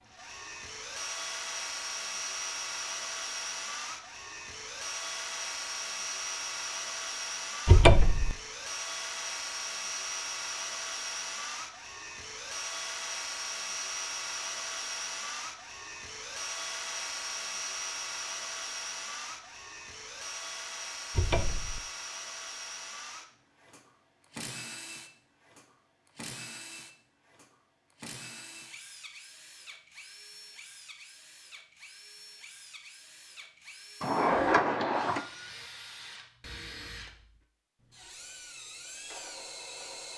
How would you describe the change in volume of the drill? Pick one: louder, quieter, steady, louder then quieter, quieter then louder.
quieter.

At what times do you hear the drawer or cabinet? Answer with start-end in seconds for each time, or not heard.
7.7-8.3, 21.1-21.8, 34.0-35.2.